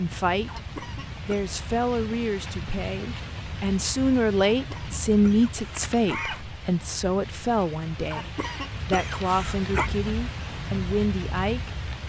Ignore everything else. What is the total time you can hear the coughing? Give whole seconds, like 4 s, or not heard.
5 s.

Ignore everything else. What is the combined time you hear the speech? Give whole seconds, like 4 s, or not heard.
12 s.